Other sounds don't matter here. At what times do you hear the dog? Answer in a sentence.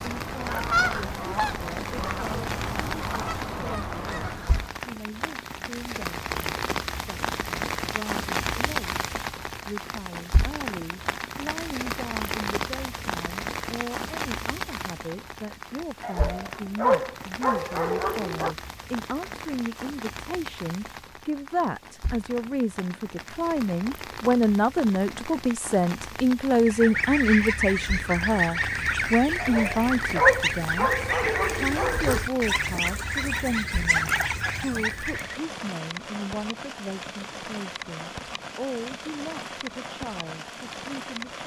The dog can be heard from 16.0 to 18.6 s and from 29.4 to 32.2 s.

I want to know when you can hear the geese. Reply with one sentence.
You can hear the geese from 0.0 to 4.8 s and from 26.6 to 35.4 s.